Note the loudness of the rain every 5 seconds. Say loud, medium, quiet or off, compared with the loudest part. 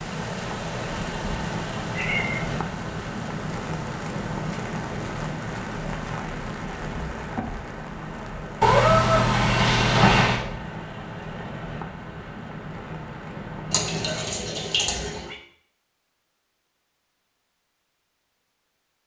loud, loud, medium, off.